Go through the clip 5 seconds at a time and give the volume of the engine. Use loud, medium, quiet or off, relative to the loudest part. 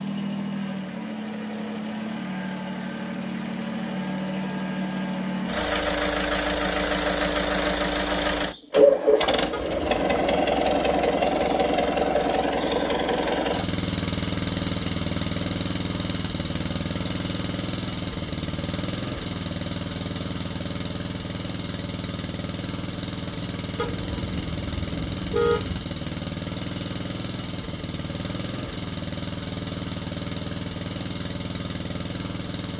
medium, loud, loud, medium, medium, medium, medium.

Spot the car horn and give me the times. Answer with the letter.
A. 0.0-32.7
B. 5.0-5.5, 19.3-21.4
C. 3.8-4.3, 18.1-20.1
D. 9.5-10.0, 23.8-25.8
D.